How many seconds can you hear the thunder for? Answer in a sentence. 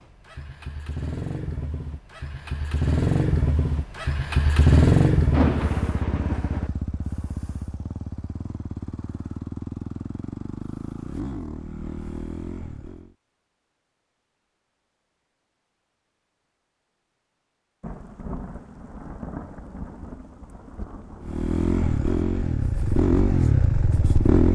The thunder can be heard for 5 seconds in total.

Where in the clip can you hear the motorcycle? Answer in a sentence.
You can hear the motorcycle from 0.0 to 13.2 s and from 21.2 to 24.5 s.